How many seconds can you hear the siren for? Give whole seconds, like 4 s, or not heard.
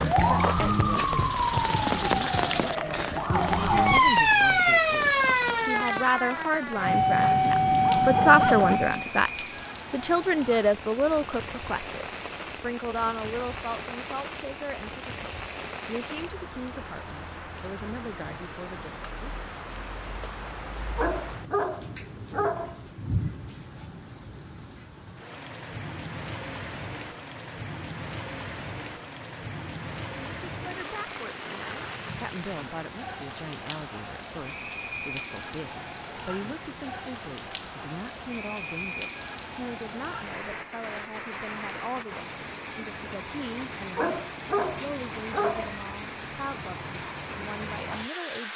9 s.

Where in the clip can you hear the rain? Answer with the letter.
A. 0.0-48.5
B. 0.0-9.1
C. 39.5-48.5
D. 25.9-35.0
A.